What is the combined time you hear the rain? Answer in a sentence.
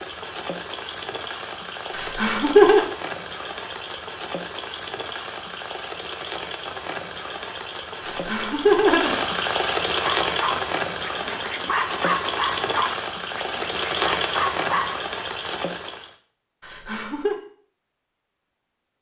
You can hear the rain for 16 seconds altogether.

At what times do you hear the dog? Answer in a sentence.
The dog can be heard from 9.9 to 15.0 s.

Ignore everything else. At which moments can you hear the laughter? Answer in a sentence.
The laughter can be heard from 1.9 to 2.8 s, from 8.1 to 9.2 s and from 16.6 to 17.4 s.